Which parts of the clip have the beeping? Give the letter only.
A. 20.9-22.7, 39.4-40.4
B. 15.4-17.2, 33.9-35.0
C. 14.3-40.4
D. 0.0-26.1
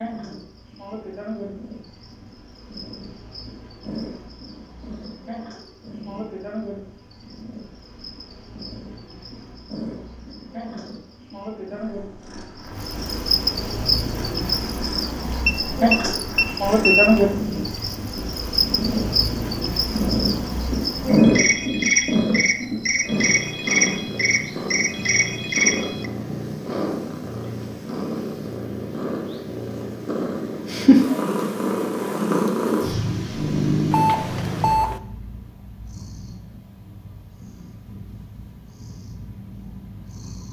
B.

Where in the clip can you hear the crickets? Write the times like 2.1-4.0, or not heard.
0.0-26.1.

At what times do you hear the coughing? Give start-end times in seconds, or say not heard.
not heard.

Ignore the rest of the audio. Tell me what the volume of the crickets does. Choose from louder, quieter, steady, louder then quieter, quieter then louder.
louder.